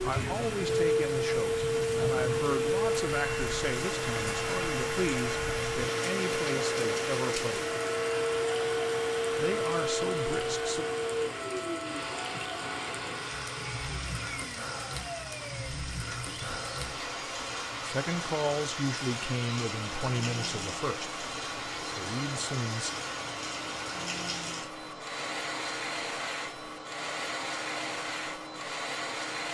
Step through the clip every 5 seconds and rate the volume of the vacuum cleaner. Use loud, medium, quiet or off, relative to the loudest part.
loud, loud, medium, quiet, quiet, quiet.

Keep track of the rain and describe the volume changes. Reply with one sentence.
The volume of the rain stays about the same.